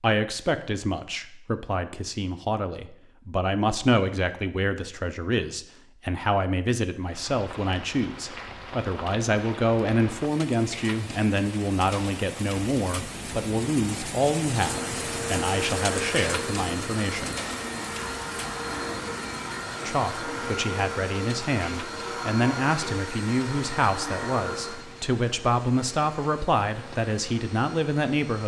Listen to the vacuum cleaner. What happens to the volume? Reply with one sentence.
The volume of the vacuum cleaner goes down.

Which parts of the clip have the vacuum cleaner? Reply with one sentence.
You can hear the vacuum cleaner from 14.6 to 28.4 s.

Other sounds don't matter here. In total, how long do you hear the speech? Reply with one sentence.
You can hear the speech for 26 seconds altogether.